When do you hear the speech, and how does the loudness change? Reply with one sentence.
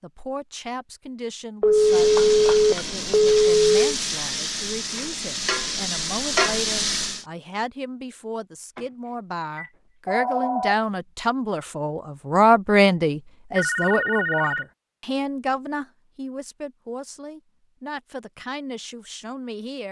The speech can be heard from 0.0 to 19.8 s, getting louder then quieter.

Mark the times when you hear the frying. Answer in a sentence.
You can hear the frying from 1.8 to 7.2 s.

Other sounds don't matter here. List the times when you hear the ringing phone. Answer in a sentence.
You can hear the ringing phone from 1.6 to 3.7 s, from 9.6 to 10.8 s and from 13.6 to 14.7 s.